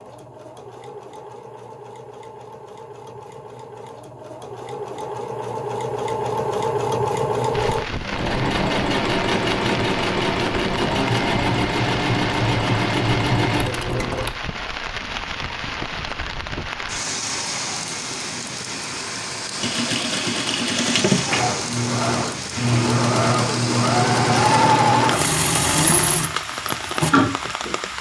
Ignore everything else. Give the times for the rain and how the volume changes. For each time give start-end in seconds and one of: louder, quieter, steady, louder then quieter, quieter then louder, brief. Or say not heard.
7.5-27.9 steady.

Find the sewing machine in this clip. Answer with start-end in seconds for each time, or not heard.
0.0-14.3, 19.6-27.9.